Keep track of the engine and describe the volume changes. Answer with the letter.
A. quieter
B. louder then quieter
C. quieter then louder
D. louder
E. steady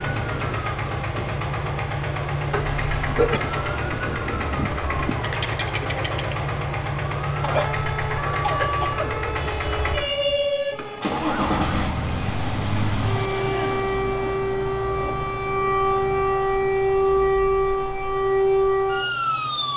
A.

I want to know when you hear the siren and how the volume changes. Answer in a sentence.
You can hear the siren from 0.0 to 19.7 s, getting louder.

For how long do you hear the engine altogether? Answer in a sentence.
The engine can be heard for 20 seconds in total.